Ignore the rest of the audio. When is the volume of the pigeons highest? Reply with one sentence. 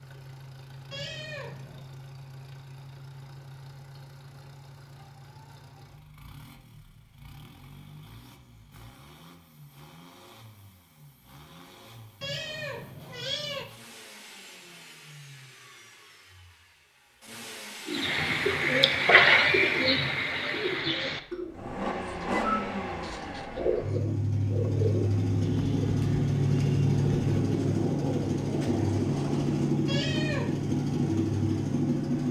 The volume of the pigeons peaks at 19 seconds.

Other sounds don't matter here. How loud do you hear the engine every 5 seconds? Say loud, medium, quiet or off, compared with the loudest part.
quiet, quiet, quiet, quiet, medium, loud, loud.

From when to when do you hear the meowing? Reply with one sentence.
You can hear the meowing from 0.9 to 1.9 s, from 12.2 to 13.7 s and from 29.9 to 30.6 s.